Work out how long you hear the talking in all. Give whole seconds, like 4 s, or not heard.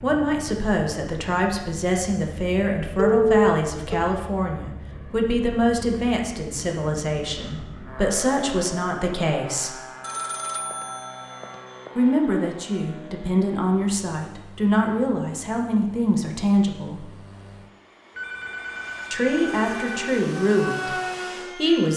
18 s.